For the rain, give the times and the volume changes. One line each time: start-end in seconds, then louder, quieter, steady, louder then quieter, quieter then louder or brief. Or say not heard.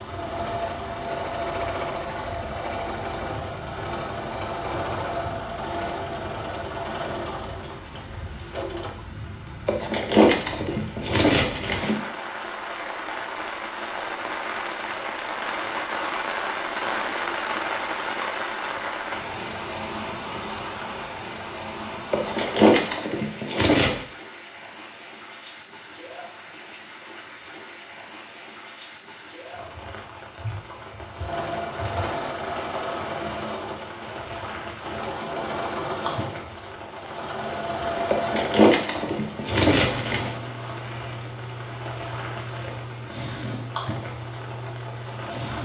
0.0-45.6 louder then quieter.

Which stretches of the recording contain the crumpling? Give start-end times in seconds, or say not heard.
9.7-11.9, 22.1-24.1, 38.1-40.3.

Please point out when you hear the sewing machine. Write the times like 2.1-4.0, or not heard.
0.0-9.0, 31.1-45.6.